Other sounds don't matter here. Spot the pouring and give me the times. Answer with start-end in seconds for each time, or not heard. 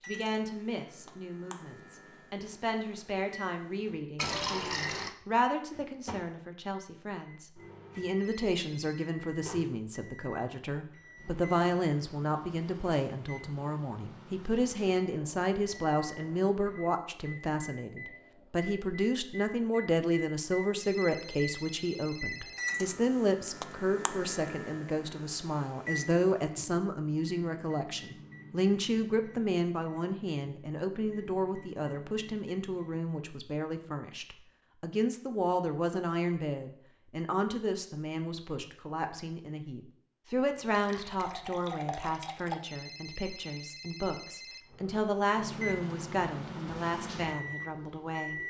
4.2-5.2, 40.5-42.5.